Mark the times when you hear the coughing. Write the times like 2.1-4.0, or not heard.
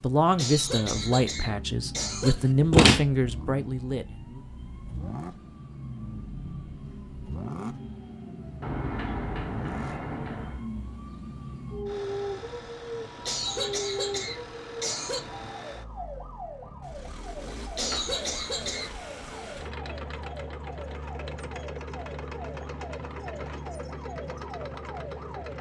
0.3-2.4, 13.2-15.2, 17.8-18.9.